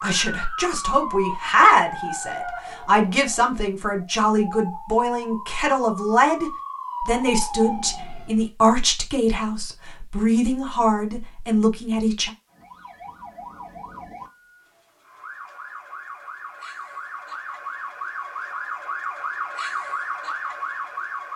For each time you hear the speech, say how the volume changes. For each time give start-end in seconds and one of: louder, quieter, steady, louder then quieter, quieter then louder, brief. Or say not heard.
0.0-12.3 steady.